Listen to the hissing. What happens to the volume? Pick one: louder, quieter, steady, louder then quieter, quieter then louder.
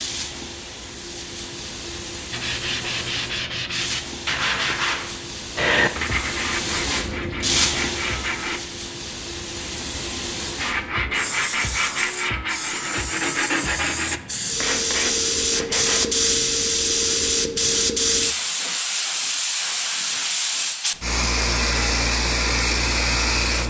louder.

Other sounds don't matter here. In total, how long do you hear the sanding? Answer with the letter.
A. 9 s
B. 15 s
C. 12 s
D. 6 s
C.